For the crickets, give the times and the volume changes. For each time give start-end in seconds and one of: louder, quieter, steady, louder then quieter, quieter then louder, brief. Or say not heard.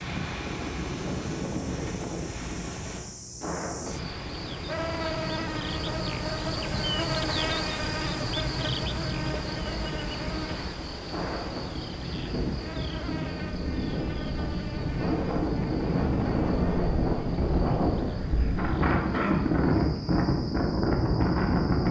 0.0-21.8 louder then quieter.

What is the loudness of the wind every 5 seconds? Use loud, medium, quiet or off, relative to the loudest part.
medium, quiet, medium, loud, loud.